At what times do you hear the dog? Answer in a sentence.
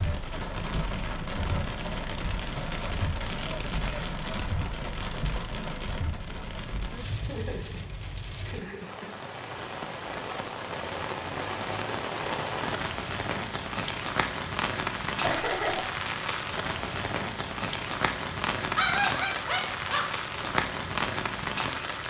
You can hear the dog from 18.8 to 20.1 s.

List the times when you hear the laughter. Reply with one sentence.
The laughter can be heard from 7.2 to 9.2 s and from 15.2 to 15.8 s.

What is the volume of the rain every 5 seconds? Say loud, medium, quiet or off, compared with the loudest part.
loud, medium, loud, loud, loud.